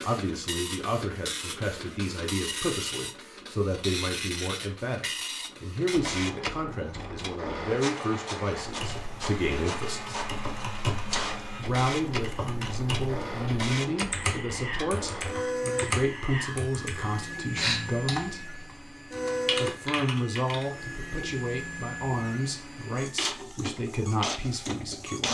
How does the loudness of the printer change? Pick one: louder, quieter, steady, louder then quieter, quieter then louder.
steady.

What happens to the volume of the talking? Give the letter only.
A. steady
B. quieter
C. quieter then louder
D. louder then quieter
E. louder
A.